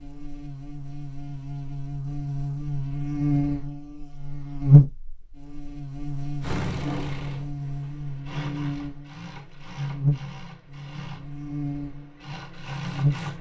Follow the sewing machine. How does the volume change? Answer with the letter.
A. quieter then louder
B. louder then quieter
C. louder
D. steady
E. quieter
A.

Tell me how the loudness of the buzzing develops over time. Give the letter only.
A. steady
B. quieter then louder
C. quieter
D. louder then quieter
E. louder
D.